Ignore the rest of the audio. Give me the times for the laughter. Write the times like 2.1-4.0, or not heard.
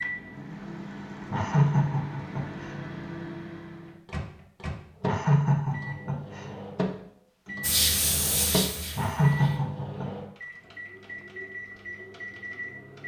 1.3-2.8, 5.0-6.5, 8.9-10.1.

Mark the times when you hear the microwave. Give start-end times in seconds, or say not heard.
0.0-13.0.